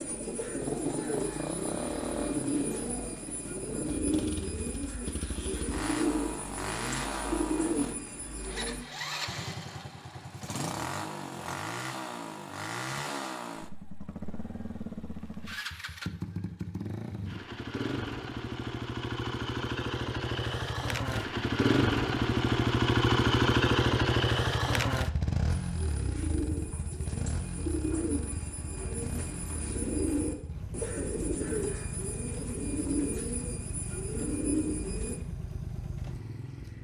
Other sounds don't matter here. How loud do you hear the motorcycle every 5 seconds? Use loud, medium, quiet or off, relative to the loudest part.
medium, medium, medium, medium, loud, medium, quiet, quiet.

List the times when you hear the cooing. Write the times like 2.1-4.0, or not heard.
0.0-8.8, 25.6-35.2.